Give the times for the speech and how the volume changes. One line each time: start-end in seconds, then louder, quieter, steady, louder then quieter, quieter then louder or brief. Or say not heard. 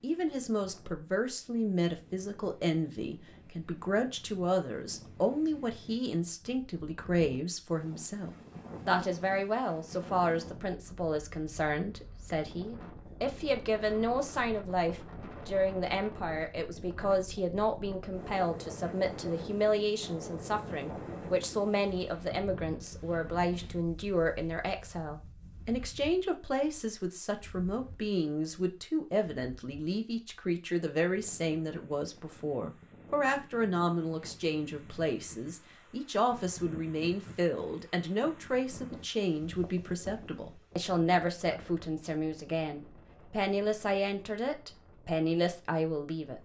0.0-46.4 steady.